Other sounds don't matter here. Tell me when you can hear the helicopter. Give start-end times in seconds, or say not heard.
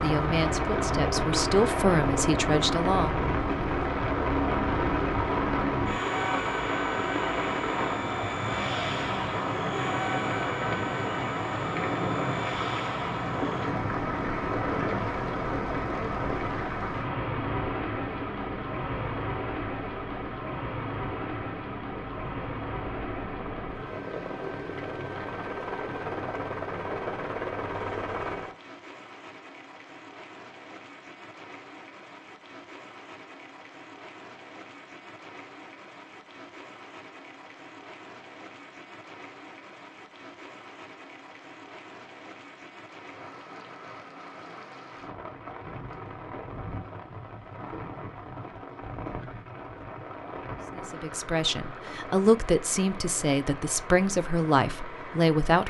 0.0-28.6.